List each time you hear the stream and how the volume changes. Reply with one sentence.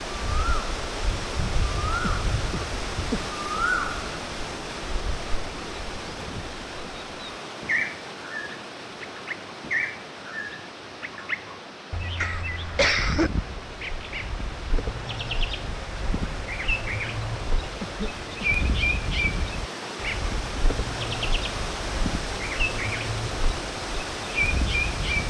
The stream can be heard from 0.0 to 25.2 s, getting quieter then louder.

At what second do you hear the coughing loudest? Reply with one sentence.
The loudest moment of the coughing is at 13 seconds.